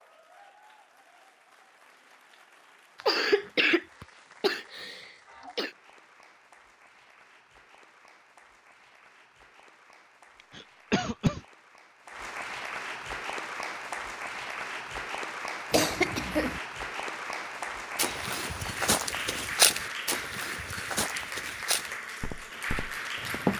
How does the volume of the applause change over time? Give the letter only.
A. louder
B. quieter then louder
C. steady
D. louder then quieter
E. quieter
A.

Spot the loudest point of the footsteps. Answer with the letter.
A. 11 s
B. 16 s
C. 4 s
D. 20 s
D.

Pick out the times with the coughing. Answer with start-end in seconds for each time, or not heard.
3.0-5.7, 10.6-11.4, 15.7-16.6.